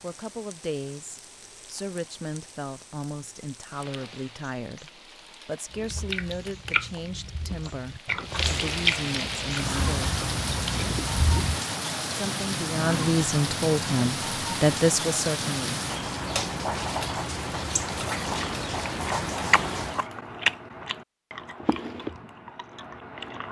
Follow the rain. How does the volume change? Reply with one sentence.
The loudness of the rain goes up.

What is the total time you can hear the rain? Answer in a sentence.
The rain can be heard for 20 seconds in total.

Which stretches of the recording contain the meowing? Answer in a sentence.
The meowing can't be heard in this clip.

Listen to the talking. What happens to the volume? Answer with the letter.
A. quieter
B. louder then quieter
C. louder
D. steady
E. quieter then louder
C.